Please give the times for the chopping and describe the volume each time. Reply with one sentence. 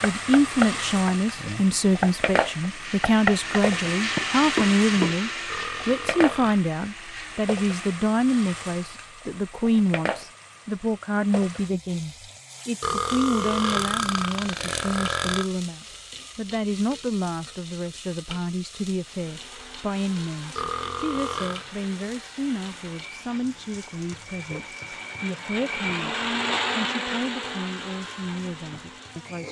You can hear the chopping from 0.0 to 5.2 s, getting quieter then louder.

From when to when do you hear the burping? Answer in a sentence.
The burping can be heard from 5.5 to 6.7 s, from 12.8 to 15.5 s and from 20.6 to 21.6 s.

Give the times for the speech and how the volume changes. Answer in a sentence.
You can hear the speech from 0.0 to 26.1 s, getting quieter; and briefly from 26.8 to 29.4 s.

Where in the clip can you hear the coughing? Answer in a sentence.
You can't hear the coughing here.